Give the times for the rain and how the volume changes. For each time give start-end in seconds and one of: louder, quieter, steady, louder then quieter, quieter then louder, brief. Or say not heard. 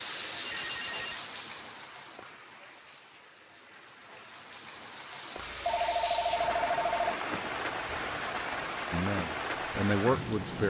0.0-10.6 quieter then louder.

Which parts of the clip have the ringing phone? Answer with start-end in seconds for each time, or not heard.
0.5-1.1, 5.4-7.2.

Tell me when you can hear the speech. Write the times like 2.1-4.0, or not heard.
8.9-10.6.